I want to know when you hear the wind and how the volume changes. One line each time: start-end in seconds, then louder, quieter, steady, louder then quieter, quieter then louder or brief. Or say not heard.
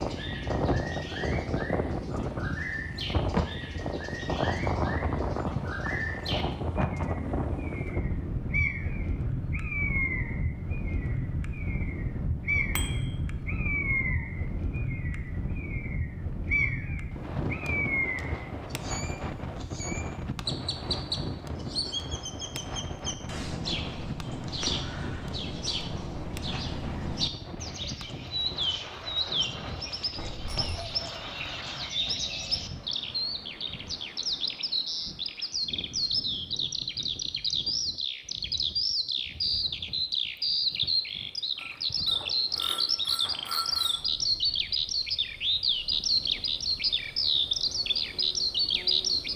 0.0-49.3 quieter.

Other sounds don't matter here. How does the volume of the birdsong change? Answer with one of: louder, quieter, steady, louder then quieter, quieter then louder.
louder.